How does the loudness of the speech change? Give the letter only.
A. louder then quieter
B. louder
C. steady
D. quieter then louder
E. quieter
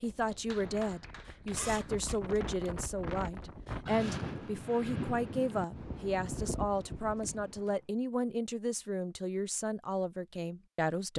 C.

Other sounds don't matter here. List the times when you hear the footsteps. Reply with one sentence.
You can't hear the footsteps here.